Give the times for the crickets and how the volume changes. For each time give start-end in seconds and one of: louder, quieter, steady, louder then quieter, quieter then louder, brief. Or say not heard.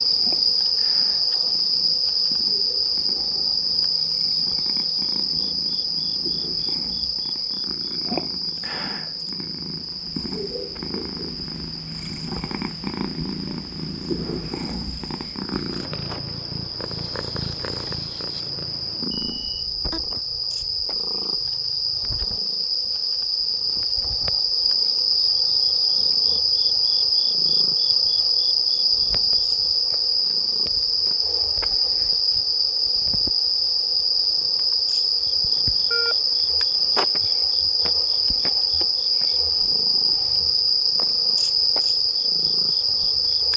0.0-43.5 quieter then louder.